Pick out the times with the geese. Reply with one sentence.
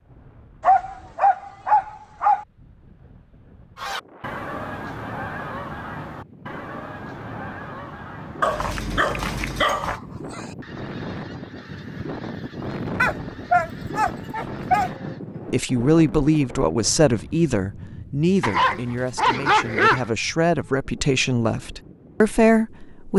You can hear the geese from 3.8 to 15.2 s.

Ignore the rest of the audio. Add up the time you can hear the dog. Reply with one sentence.
The dog can be heard for 7 seconds in total.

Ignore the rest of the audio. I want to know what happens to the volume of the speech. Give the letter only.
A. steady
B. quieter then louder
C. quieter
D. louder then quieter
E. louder
B.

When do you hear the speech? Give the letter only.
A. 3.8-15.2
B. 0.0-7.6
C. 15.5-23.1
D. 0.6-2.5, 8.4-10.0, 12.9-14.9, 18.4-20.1
C.